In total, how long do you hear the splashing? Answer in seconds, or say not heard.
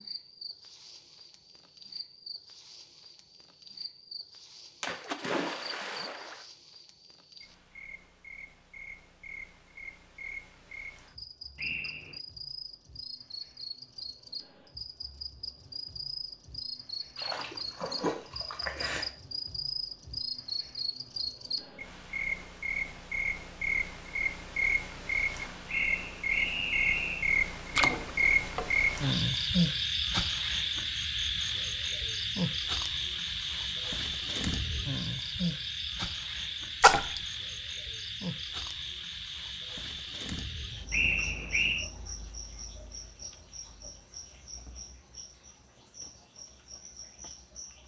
5 s.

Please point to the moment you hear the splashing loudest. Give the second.
37 s.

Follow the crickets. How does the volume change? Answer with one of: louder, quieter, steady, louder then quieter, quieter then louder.
louder then quieter.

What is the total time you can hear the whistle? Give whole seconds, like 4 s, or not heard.
3 s.